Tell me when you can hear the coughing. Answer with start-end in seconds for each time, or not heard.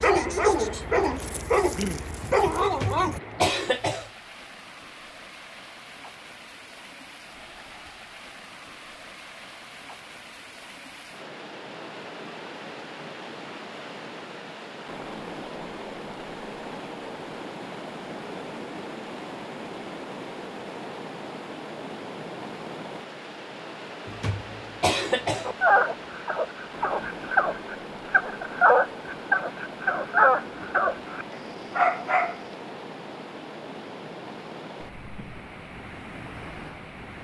2.6-4.1, 24.1-25.5.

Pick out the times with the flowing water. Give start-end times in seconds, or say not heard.
0.1-37.1.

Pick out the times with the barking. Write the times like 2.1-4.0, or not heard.
0.0-3.2, 25.4-32.4.